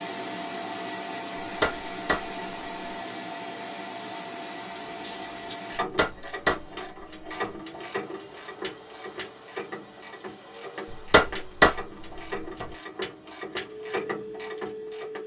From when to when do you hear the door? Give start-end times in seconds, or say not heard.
not heard.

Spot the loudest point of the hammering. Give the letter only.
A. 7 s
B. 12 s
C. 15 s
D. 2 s
B.